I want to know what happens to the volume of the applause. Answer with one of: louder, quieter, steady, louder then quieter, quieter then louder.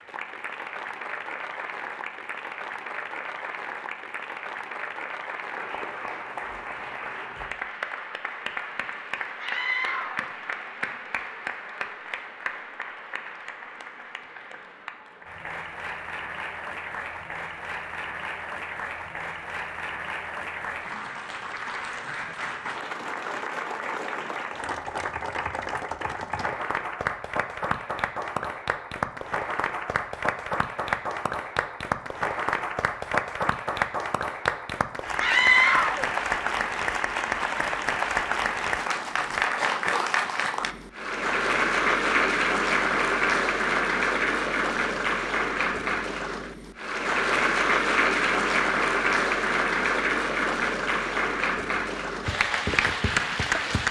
louder.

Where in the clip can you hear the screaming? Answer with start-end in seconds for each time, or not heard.
9.4-10.3, 35.1-36.0.